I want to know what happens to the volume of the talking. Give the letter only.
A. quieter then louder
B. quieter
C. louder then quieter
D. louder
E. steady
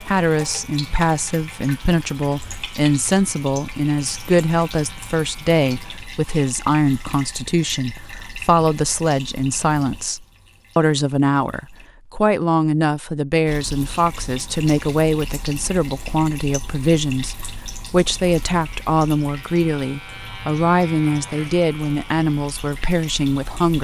E.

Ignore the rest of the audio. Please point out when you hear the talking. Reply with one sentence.
You can hear the talking from 0.1 to 23.7 s.